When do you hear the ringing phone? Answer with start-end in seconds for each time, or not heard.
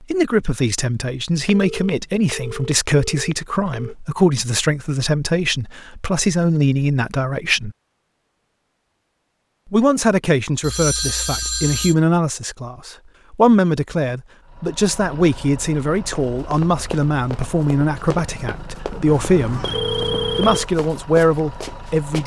1.4-4.0, 10.6-11.9, 19.1-20.7.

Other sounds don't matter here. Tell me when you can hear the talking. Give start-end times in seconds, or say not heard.
0.0-7.8, 9.7-19.6, 20.4-22.2.